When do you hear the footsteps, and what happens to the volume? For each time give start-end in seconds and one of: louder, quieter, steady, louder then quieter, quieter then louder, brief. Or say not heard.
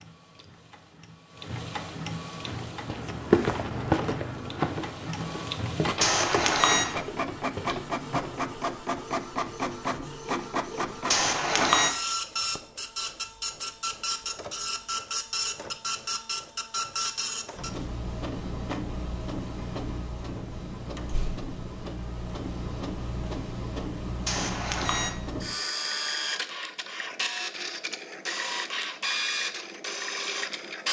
2.4-8.6 quieter.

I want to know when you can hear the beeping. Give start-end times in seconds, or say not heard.
6.0-7.0, 11.1-11.9, 24.2-25.1.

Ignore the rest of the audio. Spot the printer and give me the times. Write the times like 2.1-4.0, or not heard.
0.0-30.8.